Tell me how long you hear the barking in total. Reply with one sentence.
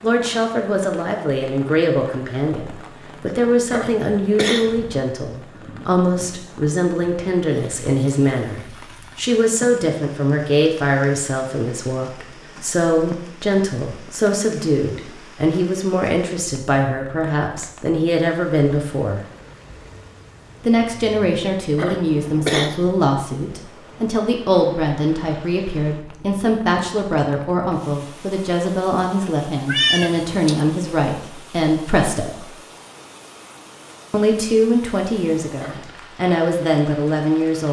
The barking can't be heard in this clip.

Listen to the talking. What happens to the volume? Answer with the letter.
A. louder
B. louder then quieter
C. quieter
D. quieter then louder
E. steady
E.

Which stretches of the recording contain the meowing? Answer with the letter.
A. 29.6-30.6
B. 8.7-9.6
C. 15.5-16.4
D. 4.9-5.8
A.